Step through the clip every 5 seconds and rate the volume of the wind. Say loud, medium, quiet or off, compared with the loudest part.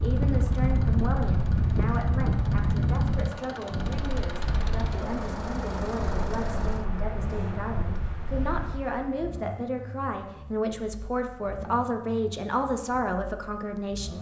loud, medium, off.